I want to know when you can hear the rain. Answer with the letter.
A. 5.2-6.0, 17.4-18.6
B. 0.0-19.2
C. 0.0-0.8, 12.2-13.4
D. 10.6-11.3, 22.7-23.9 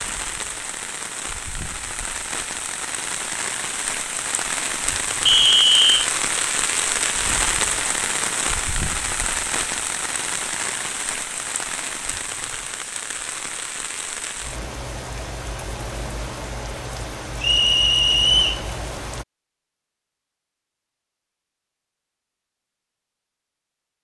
B.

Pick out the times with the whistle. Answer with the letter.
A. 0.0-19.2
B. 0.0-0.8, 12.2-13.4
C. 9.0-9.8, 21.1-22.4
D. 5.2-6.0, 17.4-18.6
D.